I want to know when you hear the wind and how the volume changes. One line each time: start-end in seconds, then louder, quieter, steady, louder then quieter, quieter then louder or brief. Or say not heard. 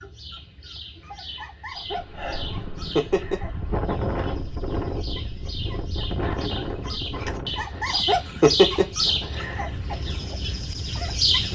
1.9-11.5 quieter.